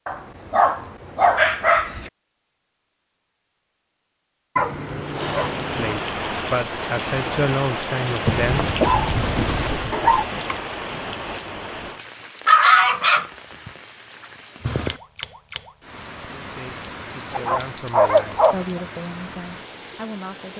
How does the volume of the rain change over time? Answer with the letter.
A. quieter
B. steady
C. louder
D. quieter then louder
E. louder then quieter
A.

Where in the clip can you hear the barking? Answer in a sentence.
The barking can be heard from 0.1 to 2.1 s, from 4.5 to 6.0 s, from 8.2 to 10.2 s, from 12.4 to 13.7 s and from 17.3 to 18.6 s.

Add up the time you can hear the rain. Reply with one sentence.
You can hear the rain for 16 seconds altogether.